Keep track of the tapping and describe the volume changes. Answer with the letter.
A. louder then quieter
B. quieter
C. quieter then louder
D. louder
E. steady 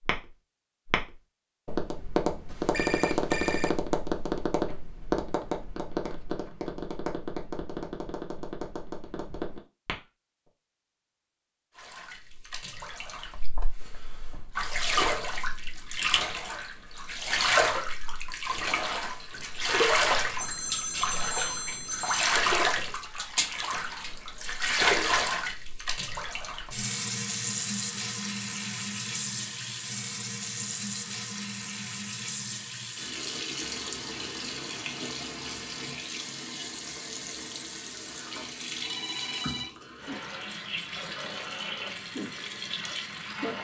B.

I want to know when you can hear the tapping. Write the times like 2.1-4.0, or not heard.
0.0-10.0.